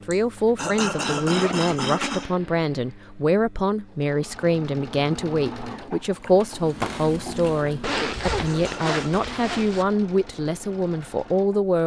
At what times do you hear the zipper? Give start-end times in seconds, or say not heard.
0.3-1.8, 7.8-9.8.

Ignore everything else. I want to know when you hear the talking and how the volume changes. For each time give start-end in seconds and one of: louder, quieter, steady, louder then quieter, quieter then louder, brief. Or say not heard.
0.1-11.8 steady.